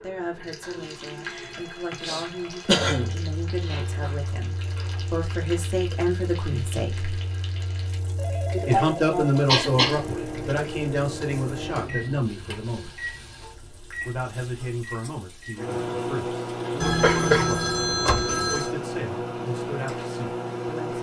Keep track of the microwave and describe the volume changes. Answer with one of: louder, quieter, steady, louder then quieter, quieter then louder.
louder.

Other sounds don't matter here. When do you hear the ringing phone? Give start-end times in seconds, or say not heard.
0.6-3.1, 8.2-9.7, 16.8-18.7.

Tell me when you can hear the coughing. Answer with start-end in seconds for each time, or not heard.
1.9-3.1, 8.5-10.6, 17.0-17.5.